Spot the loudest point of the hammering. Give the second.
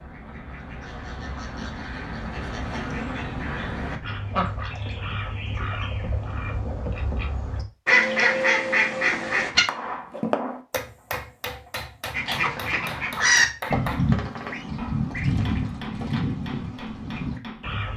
10 s.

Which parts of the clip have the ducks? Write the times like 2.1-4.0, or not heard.
0.0-9.7, 12.1-17.9.